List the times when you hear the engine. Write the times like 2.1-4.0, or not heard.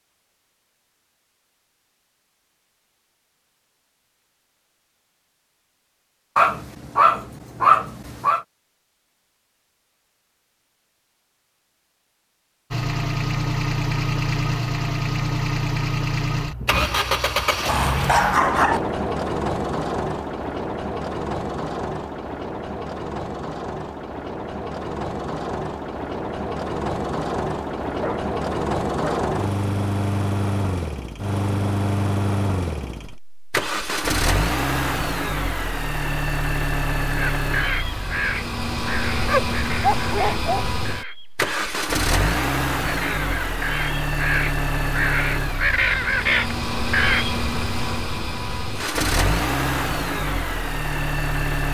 12.7-51.7.